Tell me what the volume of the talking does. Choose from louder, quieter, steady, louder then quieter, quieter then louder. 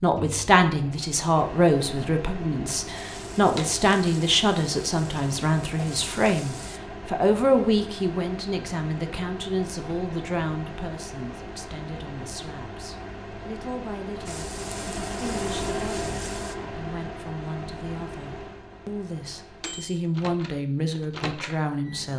quieter then louder.